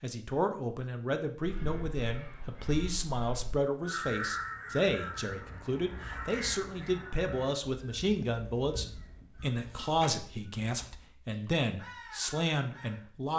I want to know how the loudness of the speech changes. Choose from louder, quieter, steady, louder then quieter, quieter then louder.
steady.